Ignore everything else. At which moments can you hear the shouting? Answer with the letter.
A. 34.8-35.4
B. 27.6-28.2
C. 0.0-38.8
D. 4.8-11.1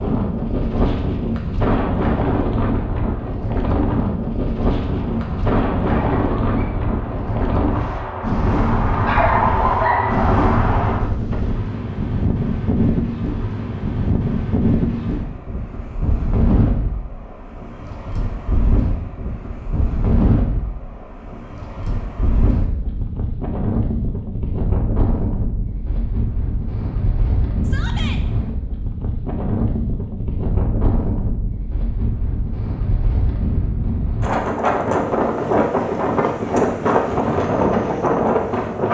B.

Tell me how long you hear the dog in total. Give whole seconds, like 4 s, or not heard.
6 s.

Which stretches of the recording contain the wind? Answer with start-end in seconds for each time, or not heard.
0.0-38.8.